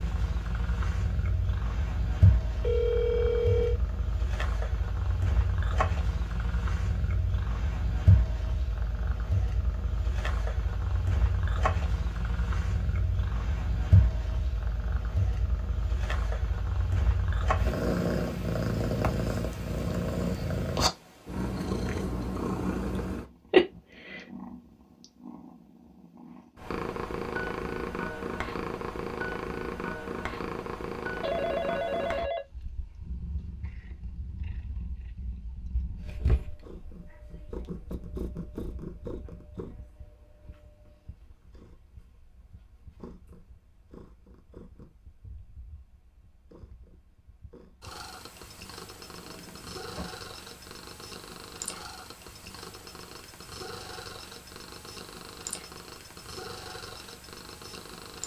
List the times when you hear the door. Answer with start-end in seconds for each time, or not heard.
49.1-50.2.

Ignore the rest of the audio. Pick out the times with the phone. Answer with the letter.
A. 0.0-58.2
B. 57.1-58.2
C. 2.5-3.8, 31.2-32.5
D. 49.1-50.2
C.